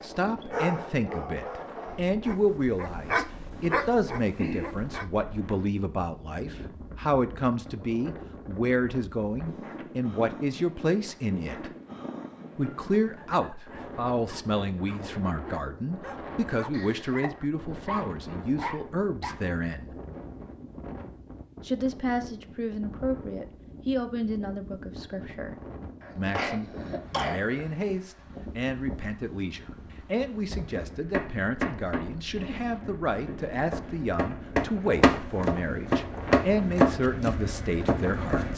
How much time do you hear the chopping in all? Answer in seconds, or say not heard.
8 s.